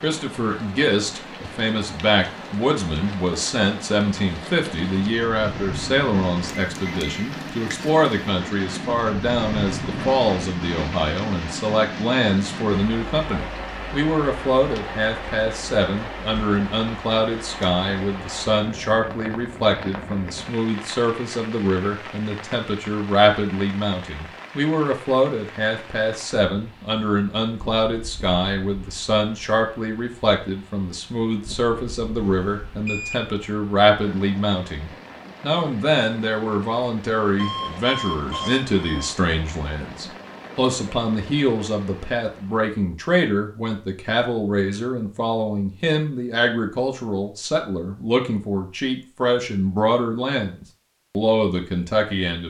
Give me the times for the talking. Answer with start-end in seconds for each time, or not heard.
0.0-52.4.